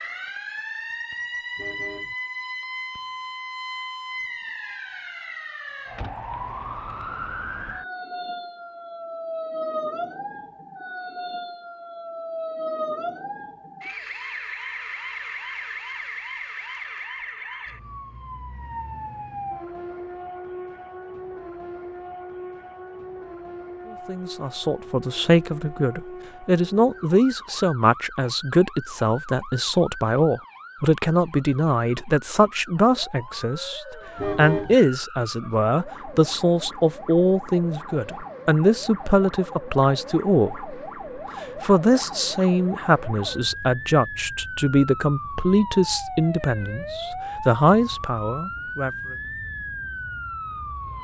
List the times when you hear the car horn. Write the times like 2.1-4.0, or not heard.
1.6-2.1, 34.1-34.8.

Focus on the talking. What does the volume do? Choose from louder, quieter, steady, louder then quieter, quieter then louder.
steady.